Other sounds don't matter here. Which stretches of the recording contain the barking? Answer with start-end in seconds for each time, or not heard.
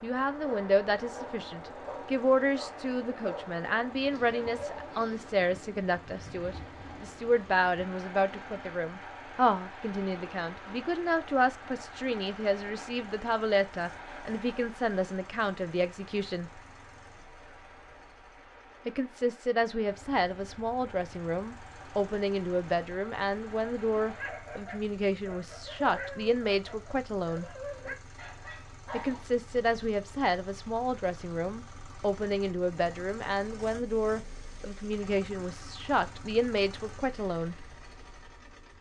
0.4-5.2, 24.1-29.2.